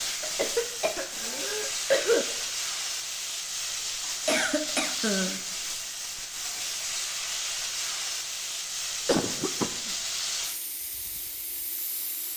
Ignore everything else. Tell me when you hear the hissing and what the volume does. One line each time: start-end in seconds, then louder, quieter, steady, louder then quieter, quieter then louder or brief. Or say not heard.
0.0-12.3 steady.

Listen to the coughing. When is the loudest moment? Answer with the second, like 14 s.
2 s.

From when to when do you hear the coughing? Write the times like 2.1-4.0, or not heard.
0.2-2.2, 4.2-5.4, 9.1-9.9.